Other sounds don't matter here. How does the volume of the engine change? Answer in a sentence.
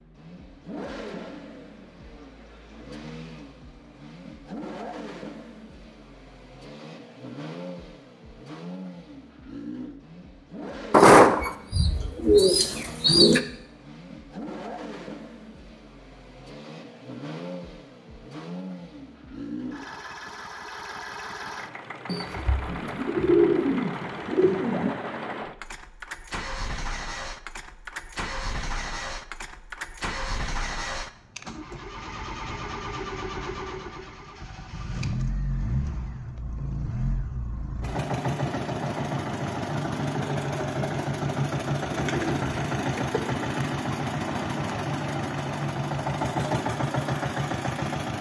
The loudness of the engine goes up.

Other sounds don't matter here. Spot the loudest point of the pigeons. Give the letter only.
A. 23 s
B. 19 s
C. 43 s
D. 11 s
D.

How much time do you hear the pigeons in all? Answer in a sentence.
The pigeons can be heard for 7 seconds in total.